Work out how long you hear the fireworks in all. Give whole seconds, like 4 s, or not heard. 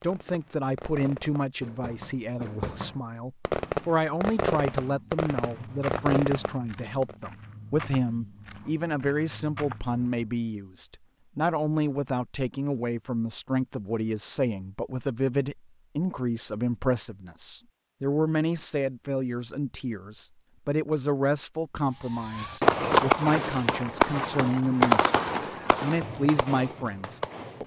13 s.